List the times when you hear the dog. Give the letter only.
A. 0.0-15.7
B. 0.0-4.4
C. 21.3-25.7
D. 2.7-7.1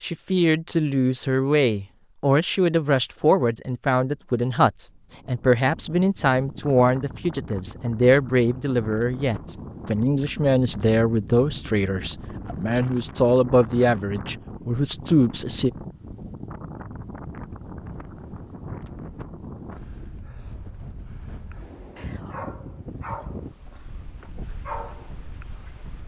C.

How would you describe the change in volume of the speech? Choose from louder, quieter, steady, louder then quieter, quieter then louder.
steady.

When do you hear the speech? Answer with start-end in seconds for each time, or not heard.
0.0-15.7.